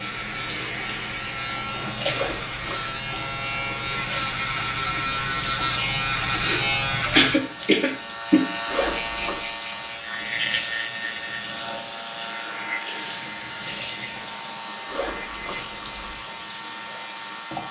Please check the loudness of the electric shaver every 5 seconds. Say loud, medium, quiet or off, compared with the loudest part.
loud, loud, medium, medium.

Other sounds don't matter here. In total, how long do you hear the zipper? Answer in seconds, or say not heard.
3 s.